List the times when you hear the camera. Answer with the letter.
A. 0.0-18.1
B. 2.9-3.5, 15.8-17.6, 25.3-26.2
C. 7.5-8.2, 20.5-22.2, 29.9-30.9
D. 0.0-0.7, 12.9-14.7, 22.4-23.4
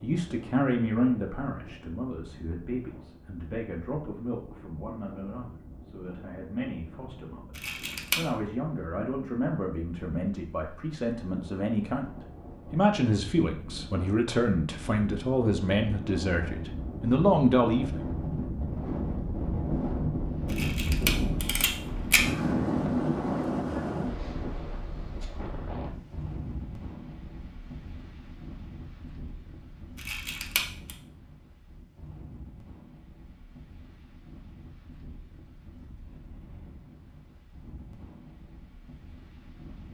C.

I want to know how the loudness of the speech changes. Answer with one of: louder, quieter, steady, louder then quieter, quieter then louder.
quieter then louder.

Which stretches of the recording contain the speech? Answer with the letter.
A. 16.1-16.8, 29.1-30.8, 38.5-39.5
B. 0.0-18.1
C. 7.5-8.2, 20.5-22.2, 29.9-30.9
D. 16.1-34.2
B.